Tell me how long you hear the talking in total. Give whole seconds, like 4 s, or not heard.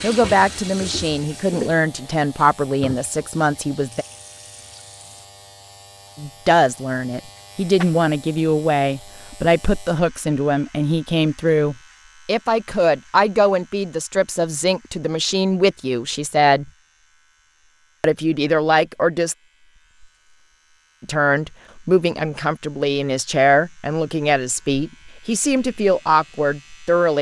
22 s.